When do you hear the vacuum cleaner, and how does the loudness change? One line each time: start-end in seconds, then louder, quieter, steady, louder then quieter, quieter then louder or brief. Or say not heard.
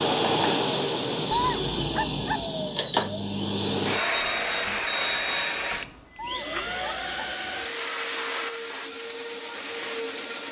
0.0-10.4 quieter.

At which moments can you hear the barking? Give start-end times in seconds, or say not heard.
1.3-2.5, 6.2-7.3.